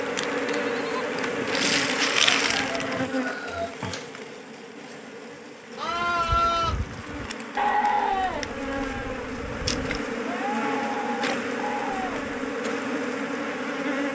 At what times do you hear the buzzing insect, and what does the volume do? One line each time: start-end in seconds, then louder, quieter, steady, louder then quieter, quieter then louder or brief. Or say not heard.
0.0-14.1 quieter then louder.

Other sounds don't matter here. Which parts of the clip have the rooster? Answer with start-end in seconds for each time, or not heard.
2.4-4.1.